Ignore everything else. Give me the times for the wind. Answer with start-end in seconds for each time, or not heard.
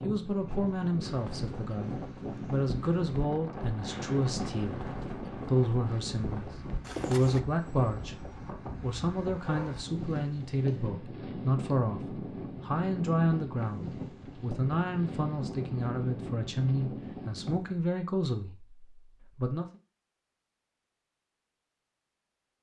0.0-17.9.